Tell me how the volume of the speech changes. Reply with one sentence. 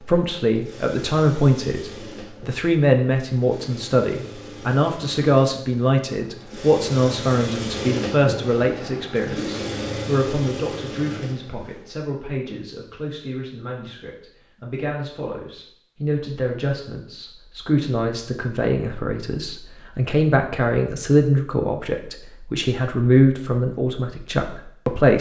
The volume of the speech goes down, then up.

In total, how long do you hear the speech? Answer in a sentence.
You can hear the speech for 25 seconds altogether.